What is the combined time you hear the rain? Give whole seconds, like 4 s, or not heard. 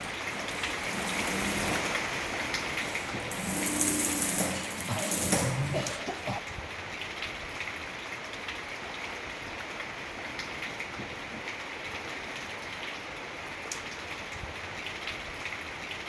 16 s.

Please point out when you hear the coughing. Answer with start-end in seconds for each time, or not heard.
4.8-6.4.